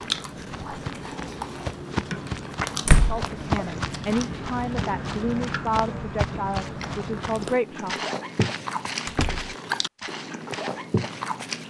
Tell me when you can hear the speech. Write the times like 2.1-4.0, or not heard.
3.0-8.0.